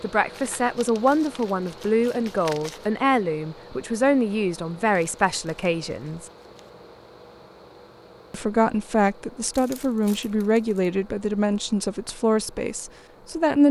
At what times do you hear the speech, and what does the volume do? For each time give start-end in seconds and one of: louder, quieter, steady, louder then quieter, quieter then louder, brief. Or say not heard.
0.0-6.2 steady
8.3-13.6 steady.